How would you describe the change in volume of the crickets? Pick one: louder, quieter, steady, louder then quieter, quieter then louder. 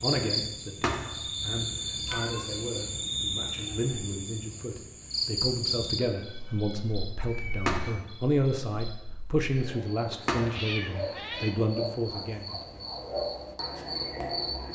quieter then louder.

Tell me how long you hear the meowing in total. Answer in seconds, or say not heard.
4 s.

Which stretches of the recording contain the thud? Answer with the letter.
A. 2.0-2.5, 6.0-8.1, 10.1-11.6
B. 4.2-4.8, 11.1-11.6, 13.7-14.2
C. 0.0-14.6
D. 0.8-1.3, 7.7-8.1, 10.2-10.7
D.